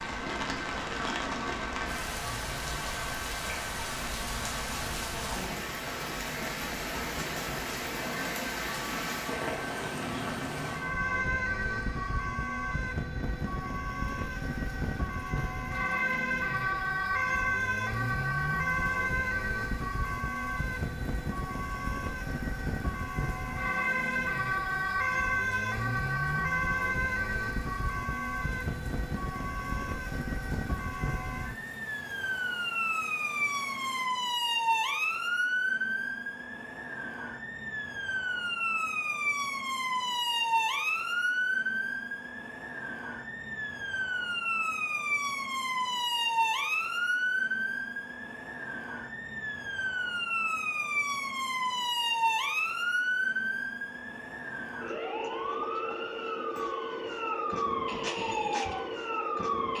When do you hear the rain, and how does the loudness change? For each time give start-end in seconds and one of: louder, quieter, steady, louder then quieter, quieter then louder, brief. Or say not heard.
0.0-34.1 quieter.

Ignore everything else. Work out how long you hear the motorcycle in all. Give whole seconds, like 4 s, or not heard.
not heard.